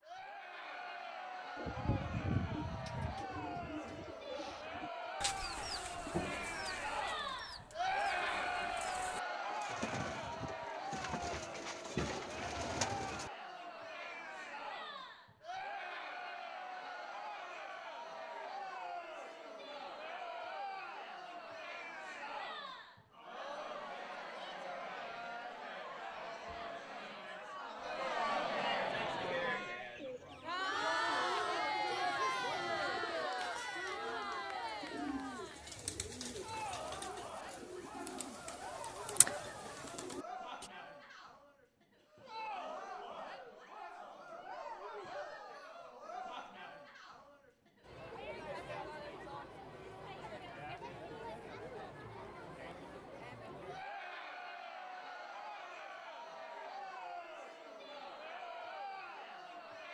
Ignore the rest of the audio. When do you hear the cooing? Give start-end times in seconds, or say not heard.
1.6-13.3, 28.9-40.7.